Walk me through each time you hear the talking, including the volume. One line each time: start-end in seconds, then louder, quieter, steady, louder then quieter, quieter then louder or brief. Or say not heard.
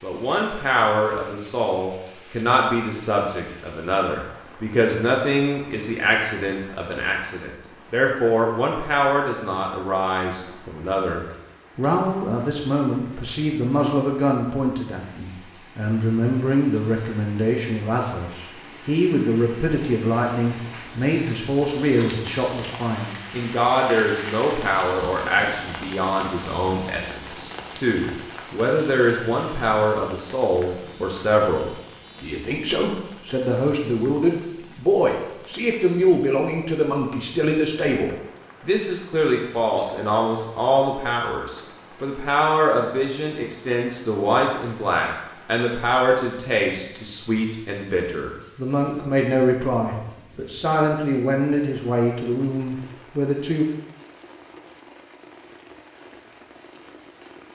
0.0-53.6 steady.